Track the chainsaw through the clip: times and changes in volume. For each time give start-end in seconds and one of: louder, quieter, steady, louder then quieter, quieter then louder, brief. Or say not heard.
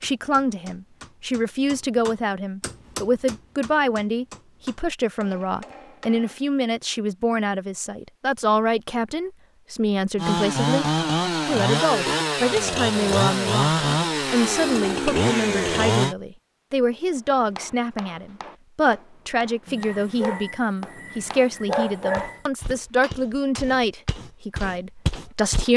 10.2-16.1 steady.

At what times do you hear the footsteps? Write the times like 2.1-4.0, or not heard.
22.1-25.6.